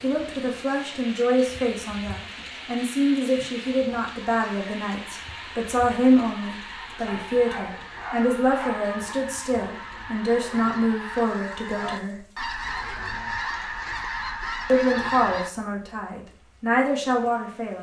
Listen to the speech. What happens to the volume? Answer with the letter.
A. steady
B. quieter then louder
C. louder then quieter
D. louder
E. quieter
A.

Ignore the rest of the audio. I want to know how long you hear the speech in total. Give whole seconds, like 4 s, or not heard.
15 s.